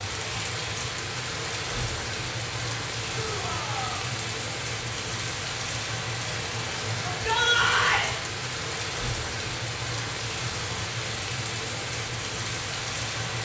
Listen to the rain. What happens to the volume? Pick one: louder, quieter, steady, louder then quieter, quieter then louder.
steady.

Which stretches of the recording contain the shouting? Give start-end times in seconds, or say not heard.
3.1-4.2, 7.0-8.1.